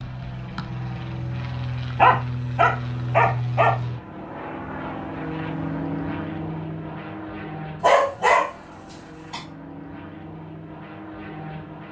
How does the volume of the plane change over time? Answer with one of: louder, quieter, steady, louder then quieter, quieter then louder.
quieter.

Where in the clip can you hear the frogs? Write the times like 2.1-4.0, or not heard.
not heard.